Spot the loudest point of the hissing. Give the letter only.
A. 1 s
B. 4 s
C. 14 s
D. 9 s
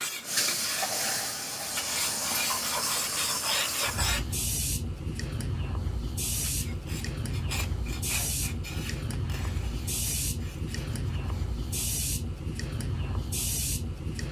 A.